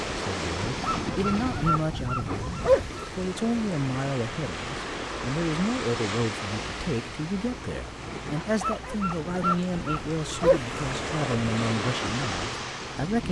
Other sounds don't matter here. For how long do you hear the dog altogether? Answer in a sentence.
You can hear the dog for 5 seconds altogether.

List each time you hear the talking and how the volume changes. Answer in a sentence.
You can hear the talking from 0.1 to 13.2 s, at a steady volume.